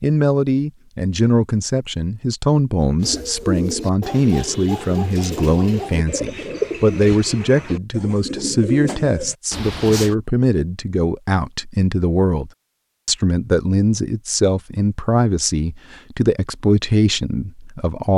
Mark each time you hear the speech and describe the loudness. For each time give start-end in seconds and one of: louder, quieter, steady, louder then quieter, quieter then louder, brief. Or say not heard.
0.0-18.1 steady.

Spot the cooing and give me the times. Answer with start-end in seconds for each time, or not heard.
3.0-10.2.